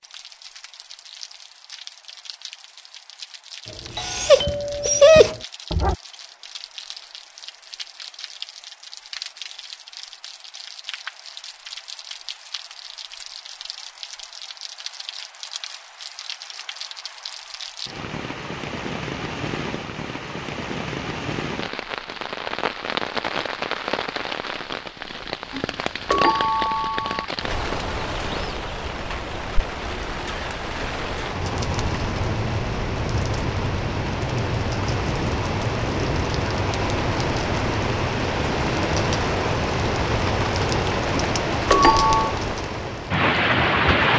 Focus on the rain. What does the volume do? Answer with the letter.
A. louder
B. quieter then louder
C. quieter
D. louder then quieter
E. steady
A.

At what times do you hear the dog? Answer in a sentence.
The dog can be heard from 4.0 to 6.0 s.